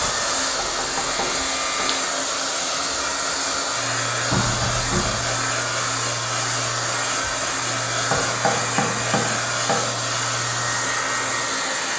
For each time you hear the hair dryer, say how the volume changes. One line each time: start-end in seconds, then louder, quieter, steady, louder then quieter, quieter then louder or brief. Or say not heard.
0.0-11.9 steady.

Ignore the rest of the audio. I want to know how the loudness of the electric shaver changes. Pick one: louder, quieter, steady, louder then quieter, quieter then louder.
steady.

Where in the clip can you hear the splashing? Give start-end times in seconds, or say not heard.
not heard.